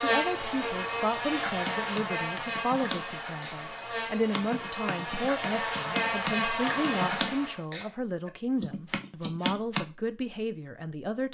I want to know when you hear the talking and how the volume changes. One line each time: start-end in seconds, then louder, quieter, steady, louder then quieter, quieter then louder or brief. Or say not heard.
0.0-11.3 steady.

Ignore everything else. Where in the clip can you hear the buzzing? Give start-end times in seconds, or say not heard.
0.0-7.6.